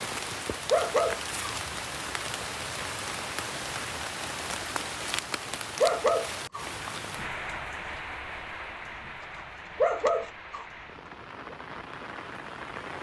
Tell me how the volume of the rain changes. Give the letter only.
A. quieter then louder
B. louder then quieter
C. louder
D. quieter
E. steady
D.